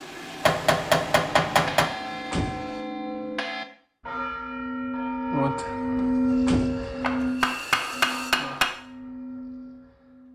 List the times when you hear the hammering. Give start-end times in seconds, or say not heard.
0.4-1.9, 7.0-8.7.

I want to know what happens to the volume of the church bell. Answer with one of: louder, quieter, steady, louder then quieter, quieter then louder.
louder then quieter.